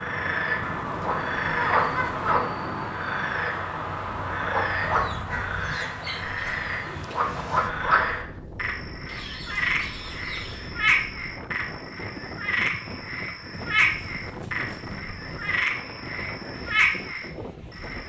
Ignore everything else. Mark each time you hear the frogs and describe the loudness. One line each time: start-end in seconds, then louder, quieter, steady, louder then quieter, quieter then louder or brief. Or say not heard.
0.0-18.0 steady.